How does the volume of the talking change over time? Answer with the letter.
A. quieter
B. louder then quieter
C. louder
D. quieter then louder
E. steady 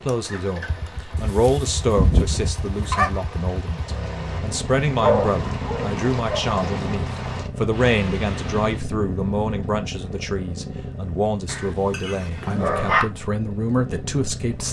E.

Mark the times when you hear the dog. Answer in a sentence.
The dog can be heard from 1.1 to 3.2 s, from 5.0 to 6.4 s and from 11.4 to 13.1 s.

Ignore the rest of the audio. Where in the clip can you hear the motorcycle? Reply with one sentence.
The motorcycle can be heard from 0.1 to 14.6 s.